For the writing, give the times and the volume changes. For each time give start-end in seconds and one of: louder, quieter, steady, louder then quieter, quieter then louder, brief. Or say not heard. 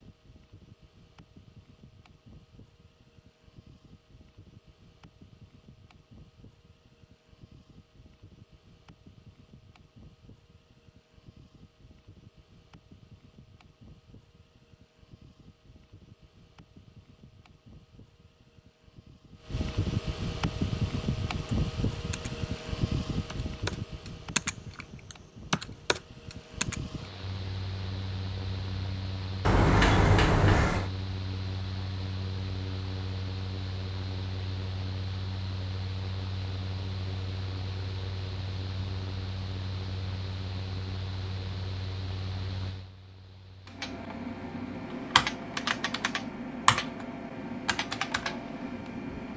not heard.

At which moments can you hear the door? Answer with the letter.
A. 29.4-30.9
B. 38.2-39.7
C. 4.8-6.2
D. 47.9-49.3
A.